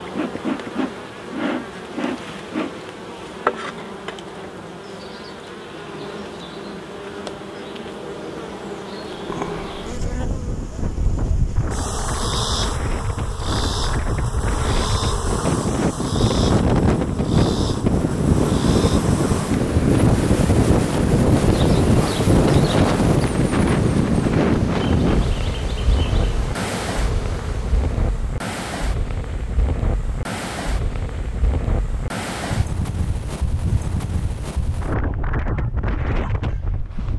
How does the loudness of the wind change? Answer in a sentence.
The loudness of the wind goes up, then down.